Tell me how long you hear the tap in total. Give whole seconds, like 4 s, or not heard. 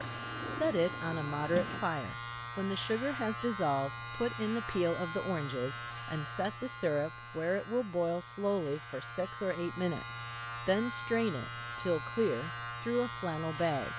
2 s.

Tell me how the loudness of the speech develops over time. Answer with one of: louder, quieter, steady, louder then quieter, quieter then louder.
steady.